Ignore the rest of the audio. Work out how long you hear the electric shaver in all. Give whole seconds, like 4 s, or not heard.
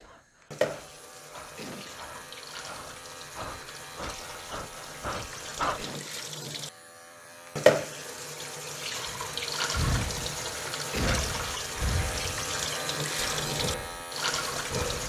15 s.